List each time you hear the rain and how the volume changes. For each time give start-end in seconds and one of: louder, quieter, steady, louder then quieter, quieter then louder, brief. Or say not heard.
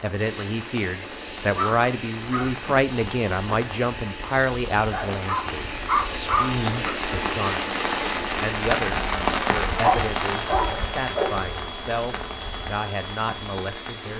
0.0-14.1 louder then quieter.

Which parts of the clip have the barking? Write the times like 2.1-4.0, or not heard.
1.6-2.5, 4.9-6.9, 9.7-11.5.